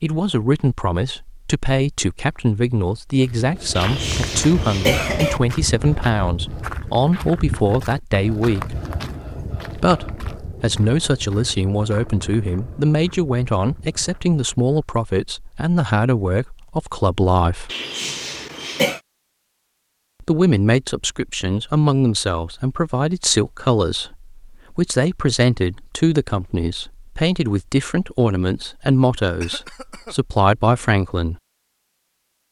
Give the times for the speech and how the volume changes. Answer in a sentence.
You can hear the speech from 0.0 to 8.8 s, at a steady volume; from 9.8 to 17.7 s, at a steady volume; and from 20.2 to 31.4 s, at a steady volume.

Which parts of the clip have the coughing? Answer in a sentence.
You can hear the coughing from 3.8 to 5.4 s, from 17.6 to 19.0 s and from 29.4 to 30.1 s.